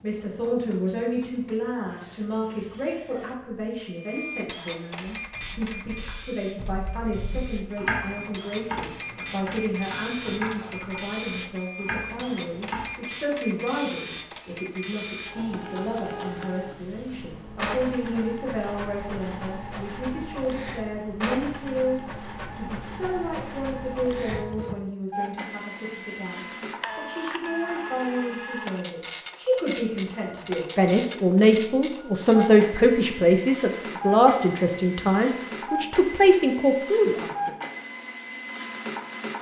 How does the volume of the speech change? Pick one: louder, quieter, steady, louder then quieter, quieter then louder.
louder.